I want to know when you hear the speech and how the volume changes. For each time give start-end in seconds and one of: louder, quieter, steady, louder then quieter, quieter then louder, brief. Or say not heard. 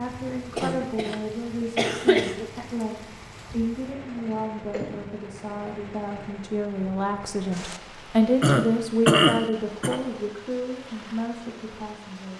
0.0-12.3 louder then quieter.